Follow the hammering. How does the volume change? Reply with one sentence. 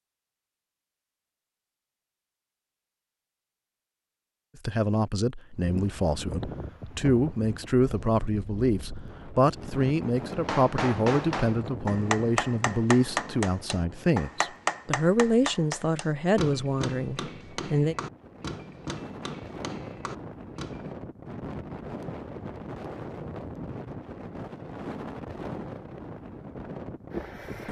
The loudness of the hammering goes down.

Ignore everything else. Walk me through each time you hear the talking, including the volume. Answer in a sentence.
You can hear the talking from 4.7 to 17.9 s, at a steady volume.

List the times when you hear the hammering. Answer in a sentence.
The hammering can be heard from 10.3 to 20.9 s.